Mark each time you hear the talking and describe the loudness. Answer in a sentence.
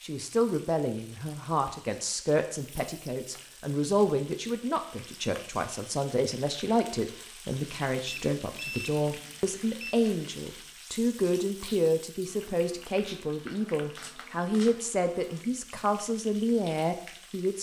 You can hear the talking from 0.0 to 17.5 s, at a steady volume.